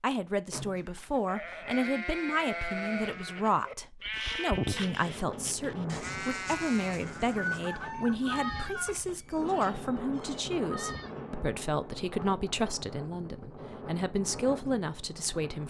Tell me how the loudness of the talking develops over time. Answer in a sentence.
The loudness of the talking stays about the same.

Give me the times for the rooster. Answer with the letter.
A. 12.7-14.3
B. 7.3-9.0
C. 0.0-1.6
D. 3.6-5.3
B.